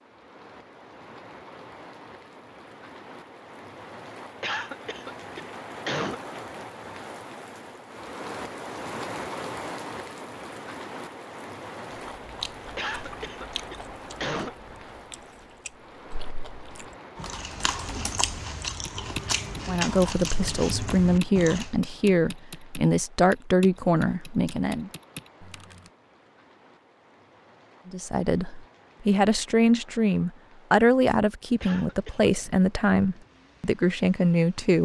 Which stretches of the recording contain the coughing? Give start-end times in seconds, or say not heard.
4.4-6.2, 12.8-14.6, 31.6-32.6.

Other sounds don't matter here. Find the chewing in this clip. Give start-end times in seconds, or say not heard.
12.2-21.7.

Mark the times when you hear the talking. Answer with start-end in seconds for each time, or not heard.
19.6-24.9, 27.9-34.8.